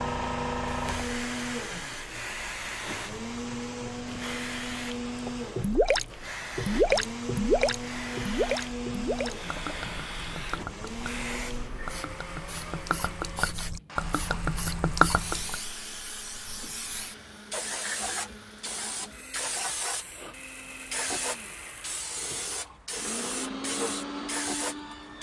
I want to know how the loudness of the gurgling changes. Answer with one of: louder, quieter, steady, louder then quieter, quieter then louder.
quieter then louder.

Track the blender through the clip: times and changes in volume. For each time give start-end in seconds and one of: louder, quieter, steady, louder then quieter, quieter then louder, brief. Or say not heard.
0.0-25.1 quieter then louder.